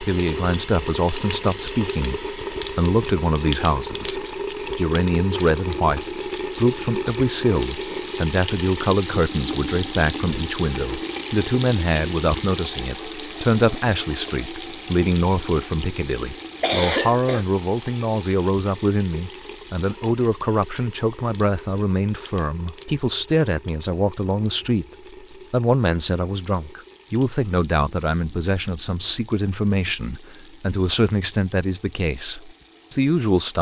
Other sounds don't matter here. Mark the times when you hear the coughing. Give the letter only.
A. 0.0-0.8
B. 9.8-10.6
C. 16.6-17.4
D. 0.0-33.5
C.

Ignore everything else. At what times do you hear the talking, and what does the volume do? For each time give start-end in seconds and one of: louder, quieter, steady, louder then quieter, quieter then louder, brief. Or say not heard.
0.0-33.5 steady.